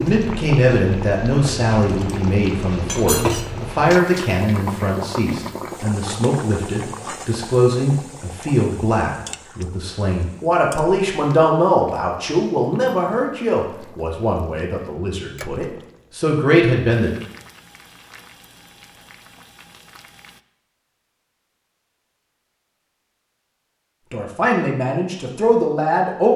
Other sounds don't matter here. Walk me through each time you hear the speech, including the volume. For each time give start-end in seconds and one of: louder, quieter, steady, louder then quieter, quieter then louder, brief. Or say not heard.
0.0-17.1 steady
24.1-26.3 brief.